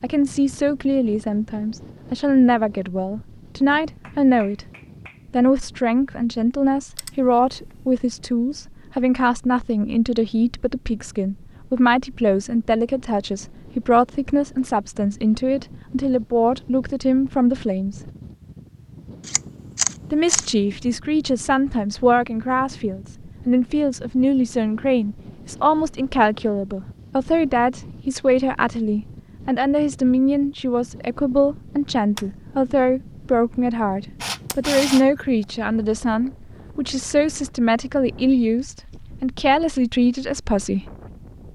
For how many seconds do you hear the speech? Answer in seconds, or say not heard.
38 s.